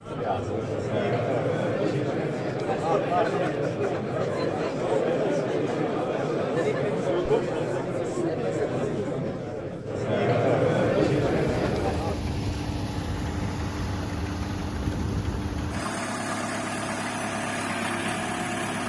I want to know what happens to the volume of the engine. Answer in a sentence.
The loudness of the engine stays about the same.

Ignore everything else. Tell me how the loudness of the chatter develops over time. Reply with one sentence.
The loudness of the chatter stays about the same.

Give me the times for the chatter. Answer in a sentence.
You can hear the chatter from 0.0 to 12.2 s.